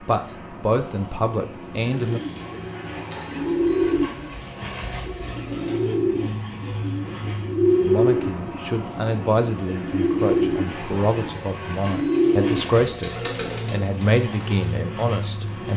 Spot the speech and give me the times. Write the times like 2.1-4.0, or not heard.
0.1-2.2, 7.8-13.1, 13.7-15.7.